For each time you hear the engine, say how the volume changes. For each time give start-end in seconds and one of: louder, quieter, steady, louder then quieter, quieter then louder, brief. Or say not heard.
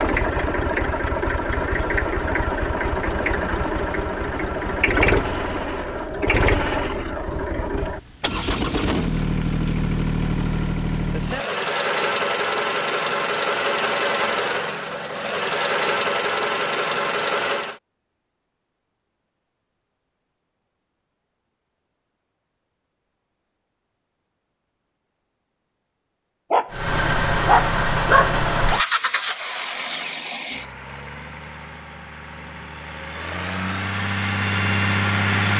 0.0-17.8 steady
26.7-35.5 quieter then louder.